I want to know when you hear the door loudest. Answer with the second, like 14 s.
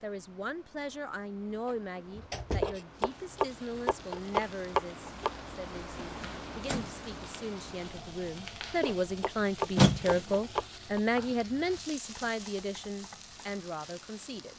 10 s.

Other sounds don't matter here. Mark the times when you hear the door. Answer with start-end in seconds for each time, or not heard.
1.5-2.8, 6.0-6.9, 9.8-10.2.